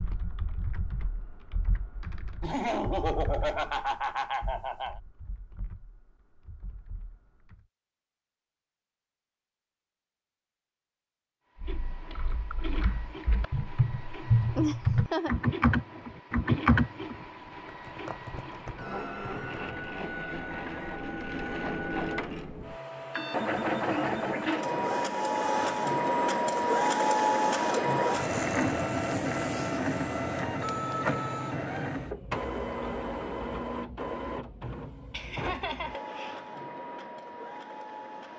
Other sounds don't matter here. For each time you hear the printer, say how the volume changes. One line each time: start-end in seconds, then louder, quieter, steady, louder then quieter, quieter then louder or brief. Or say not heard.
11.6-38.3 louder then quieter.